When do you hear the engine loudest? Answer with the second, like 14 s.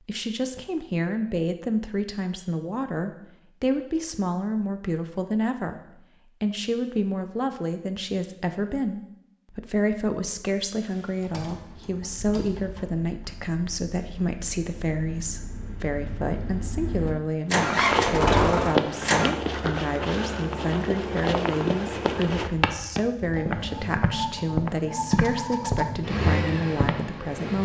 18 s.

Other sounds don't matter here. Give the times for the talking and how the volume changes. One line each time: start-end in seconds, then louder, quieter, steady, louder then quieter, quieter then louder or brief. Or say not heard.
0.1-27.6 steady.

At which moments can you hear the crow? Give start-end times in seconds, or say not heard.
not heard.